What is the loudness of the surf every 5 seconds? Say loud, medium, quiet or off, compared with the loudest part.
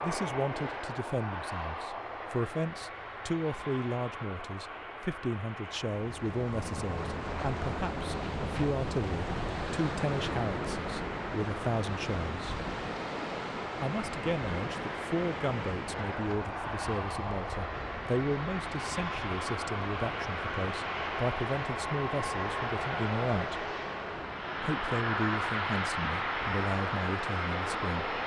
off, loud, loud, medium, medium, medium.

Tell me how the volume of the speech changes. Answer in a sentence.
The volume of the speech stays about the same.